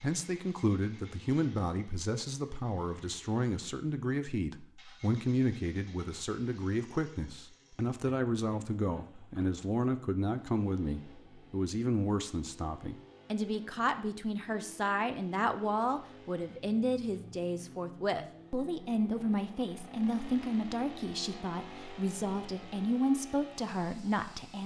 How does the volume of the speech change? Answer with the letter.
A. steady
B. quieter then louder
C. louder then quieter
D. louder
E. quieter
A.